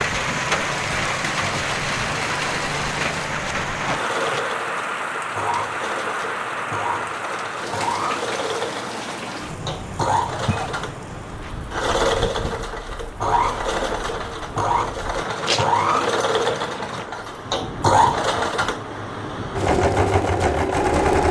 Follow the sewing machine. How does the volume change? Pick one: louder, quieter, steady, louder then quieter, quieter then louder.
louder.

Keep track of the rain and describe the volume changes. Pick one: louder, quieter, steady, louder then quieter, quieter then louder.
quieter.